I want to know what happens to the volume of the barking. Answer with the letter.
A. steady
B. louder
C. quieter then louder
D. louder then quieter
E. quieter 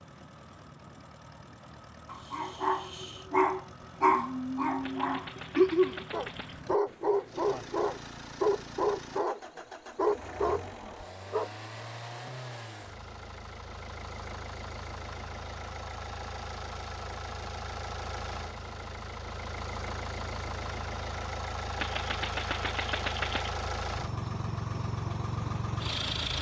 A.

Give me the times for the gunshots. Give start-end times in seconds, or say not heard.
4.8-6.7, 21.8-23.6.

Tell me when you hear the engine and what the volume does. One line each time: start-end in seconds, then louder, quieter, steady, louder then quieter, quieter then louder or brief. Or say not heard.
0.0-26.3 louder.